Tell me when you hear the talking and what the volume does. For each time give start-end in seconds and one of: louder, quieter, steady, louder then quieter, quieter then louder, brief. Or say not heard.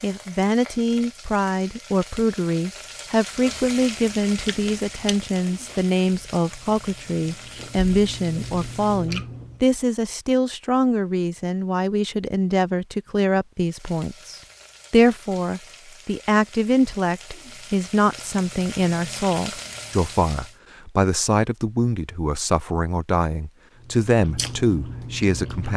0.0-25.7 steady.